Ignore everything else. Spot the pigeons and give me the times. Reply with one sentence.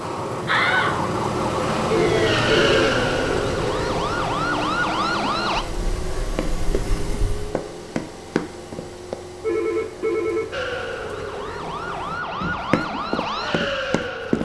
The pigeons can't be heard in this clip.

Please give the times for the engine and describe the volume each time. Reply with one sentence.
You can hear the engine from 0.0 to 12.2 s, getting quieter.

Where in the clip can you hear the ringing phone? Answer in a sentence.
You can hear the ringing phone from 1.9 to 2.9 s and from 9.4 to 10.6 s.